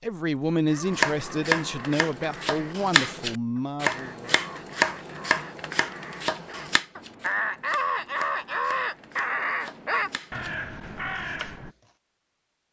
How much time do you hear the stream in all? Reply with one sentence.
You can't hear the stream here.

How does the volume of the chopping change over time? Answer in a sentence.
The loudness of the chopping goes down.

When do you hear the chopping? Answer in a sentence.
The chopping can be heard from 0.8 to 11.9 s.